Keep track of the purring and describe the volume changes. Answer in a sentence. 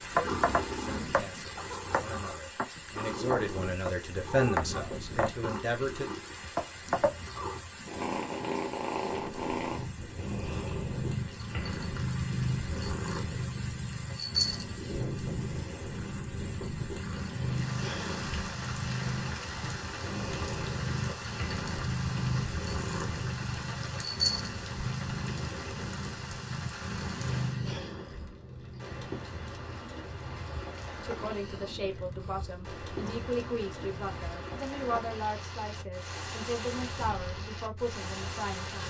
The loudness of the purring goes down.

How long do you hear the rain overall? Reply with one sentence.
The rain can be heard for 39 seconds in total.